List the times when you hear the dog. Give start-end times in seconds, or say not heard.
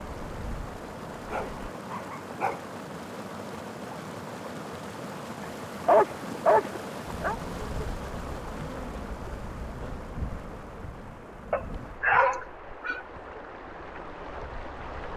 1.2-2.8, 5.4-7.3, 11.5-13.0.